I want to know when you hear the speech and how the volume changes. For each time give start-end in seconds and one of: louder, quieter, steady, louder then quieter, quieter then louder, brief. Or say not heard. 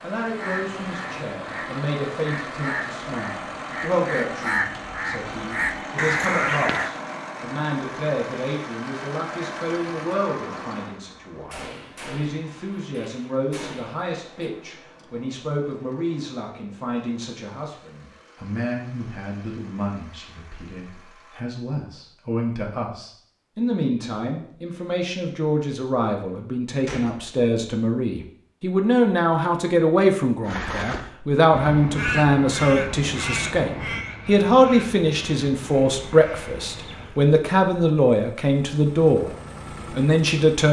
0.0-40.6 louder.